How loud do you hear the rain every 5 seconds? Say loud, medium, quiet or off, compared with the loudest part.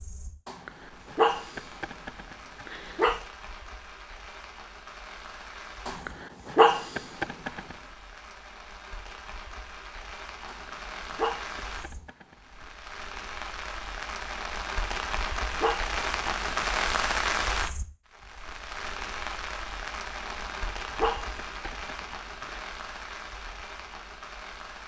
quiet, quiet, medium, loud, medium.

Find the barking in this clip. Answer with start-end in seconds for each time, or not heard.
0.5-3.2, 5.8-7.8, 10.4-12.7, 14.9-16.6, 20.2-22.6.